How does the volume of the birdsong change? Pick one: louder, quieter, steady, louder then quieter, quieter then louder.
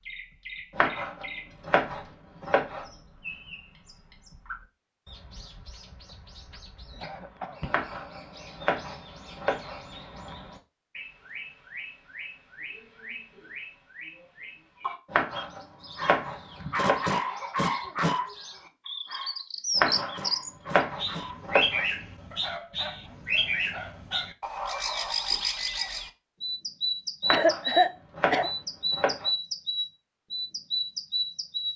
louder.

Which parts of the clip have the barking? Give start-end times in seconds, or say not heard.
15.9-21.4, 22.3-24.9.